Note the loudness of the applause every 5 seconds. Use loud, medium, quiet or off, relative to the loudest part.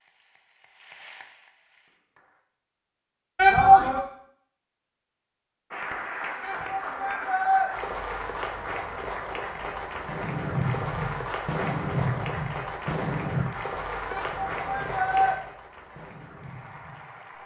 quiet, loud, loud, medium.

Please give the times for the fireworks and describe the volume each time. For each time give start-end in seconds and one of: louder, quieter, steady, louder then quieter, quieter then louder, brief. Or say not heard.
10.1-17.2 quieter.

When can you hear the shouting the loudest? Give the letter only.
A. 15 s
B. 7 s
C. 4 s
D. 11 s
C.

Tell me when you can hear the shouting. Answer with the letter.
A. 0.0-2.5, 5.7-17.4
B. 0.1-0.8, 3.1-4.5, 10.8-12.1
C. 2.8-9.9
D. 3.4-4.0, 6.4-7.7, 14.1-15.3
D.